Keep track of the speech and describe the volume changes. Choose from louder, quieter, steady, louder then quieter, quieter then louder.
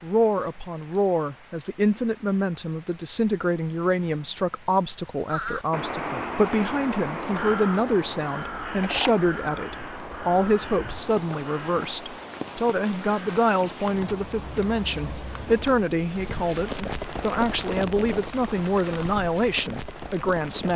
steady.